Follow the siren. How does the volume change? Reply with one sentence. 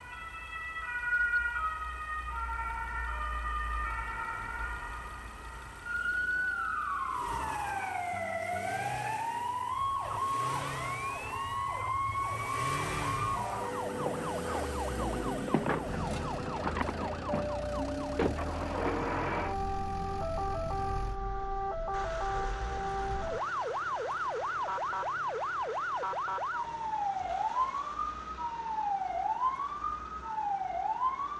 The volume of the siren stays about the same.